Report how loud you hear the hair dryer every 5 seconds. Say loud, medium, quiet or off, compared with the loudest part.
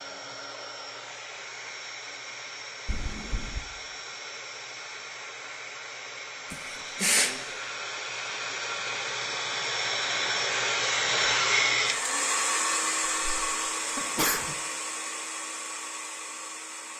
quiet, medium, loud, medium.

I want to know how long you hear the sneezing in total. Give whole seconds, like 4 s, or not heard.
3 s.